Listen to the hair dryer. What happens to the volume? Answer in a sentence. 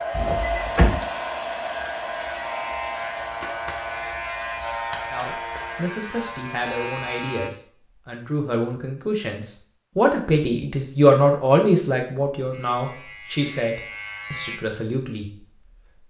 The loudness of the hair dryer goes down.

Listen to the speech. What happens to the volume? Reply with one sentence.
The volume of the speech goes up, then down.